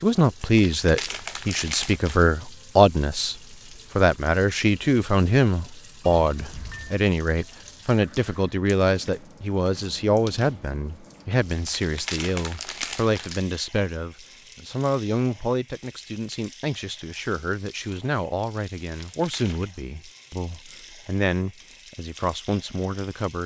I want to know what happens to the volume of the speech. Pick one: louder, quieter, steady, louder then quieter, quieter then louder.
quieter.